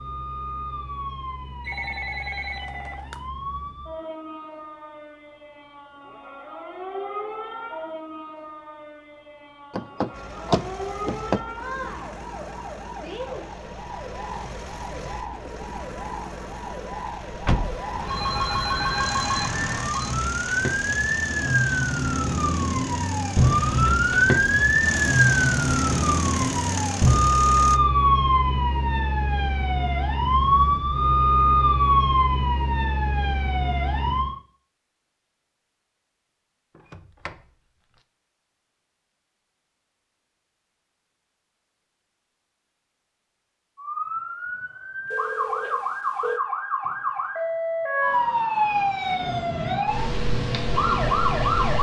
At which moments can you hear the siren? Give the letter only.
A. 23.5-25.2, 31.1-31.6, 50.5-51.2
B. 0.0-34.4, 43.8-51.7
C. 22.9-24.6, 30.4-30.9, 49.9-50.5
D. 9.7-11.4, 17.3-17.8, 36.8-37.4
B.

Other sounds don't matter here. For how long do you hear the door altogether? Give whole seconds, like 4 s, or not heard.
3 s.